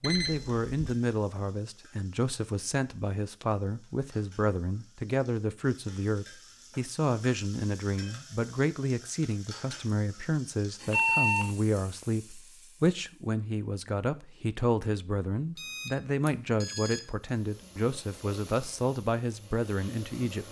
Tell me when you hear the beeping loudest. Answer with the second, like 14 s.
11 s.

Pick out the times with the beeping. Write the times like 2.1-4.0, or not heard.
0.0-0.7, 10.9-11.5, 15.6-17.0.